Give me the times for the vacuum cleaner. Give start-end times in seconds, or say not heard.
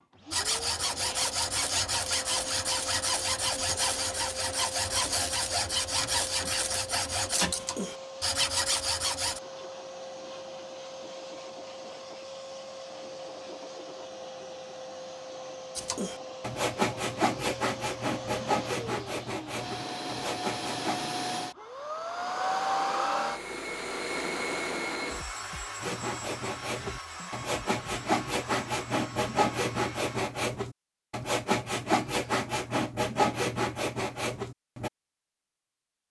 0.0-30.2.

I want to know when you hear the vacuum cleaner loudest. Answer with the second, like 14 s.
23 s.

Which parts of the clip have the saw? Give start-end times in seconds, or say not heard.
0.3-9.4, 15.8-21.1, 25.8-34.9.